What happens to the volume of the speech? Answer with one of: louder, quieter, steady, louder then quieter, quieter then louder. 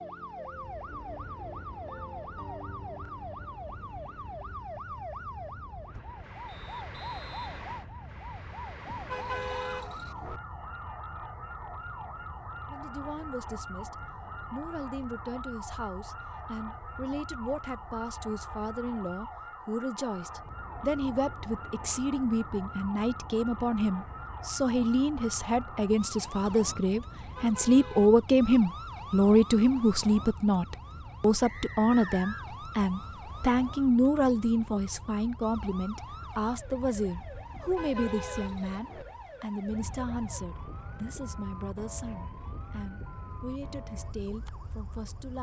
louder then quieter.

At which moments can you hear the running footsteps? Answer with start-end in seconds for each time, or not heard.
not heard.